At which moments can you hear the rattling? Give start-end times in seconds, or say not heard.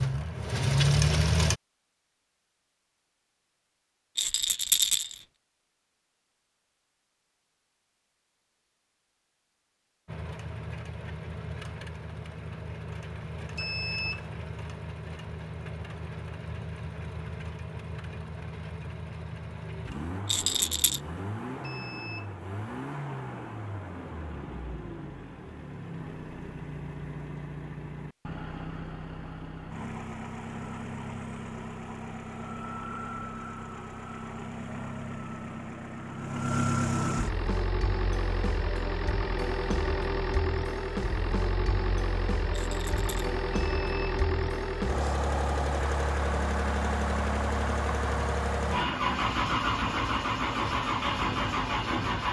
4.2-5.2, 20.2-21.0, 42.5-43.3.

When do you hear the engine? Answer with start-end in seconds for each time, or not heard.
0.0-1.6, 10.1-52.2.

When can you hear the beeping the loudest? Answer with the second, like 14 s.
14 s.